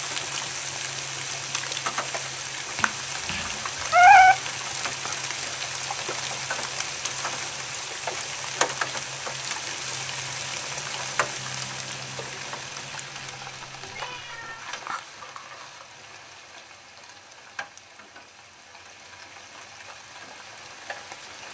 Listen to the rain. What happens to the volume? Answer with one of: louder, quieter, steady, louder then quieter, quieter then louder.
quieter.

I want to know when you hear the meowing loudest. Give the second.
4 s.